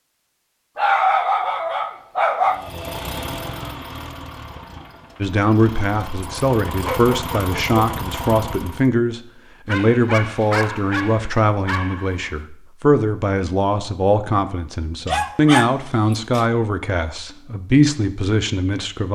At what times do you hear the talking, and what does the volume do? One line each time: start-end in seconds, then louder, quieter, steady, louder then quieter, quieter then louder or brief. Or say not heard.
5.2-19.1 steady.